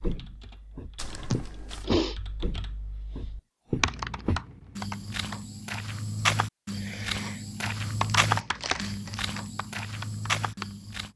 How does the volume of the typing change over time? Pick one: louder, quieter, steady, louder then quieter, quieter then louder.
louder then quieter.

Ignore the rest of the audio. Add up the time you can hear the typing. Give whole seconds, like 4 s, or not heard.
9 s.